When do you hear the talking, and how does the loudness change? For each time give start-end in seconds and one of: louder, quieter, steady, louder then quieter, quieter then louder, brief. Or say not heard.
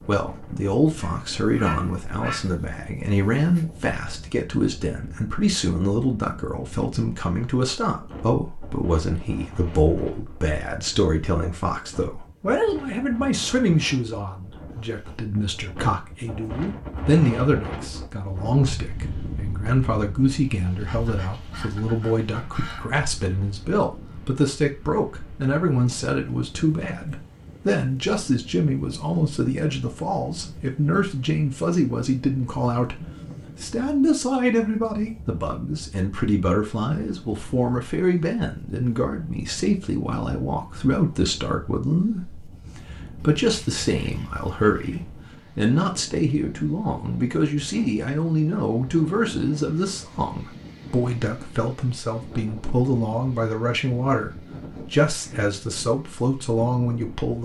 0.1-57.4 steady.